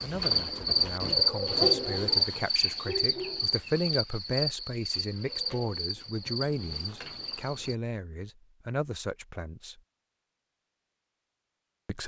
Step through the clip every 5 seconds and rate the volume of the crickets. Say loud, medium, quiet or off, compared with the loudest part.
loud, medium, off.